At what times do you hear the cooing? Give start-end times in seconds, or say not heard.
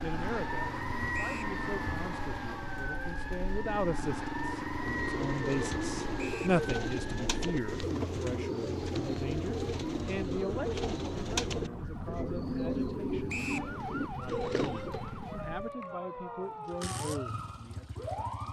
4.8-15.1.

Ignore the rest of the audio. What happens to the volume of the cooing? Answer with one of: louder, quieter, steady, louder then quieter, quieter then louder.
steady.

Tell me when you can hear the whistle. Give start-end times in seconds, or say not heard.
1.1-1.6, 6.2-6.6, 13.2-13.7.